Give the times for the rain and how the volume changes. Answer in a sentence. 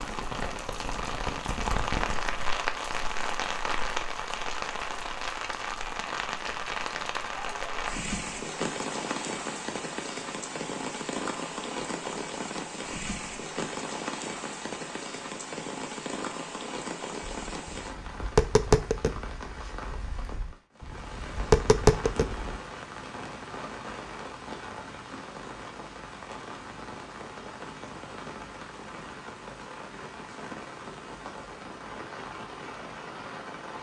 The rain can be heard from 0.0 to 33.7 s, getting quieter.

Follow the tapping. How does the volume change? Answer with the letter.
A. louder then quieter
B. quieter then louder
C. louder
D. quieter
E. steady
B.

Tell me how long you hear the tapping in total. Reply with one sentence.
The tapping can be heard for 5 seconds in total.